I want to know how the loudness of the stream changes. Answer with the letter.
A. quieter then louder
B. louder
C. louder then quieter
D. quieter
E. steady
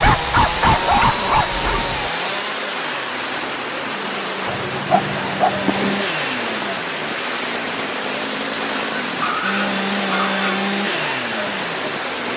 E.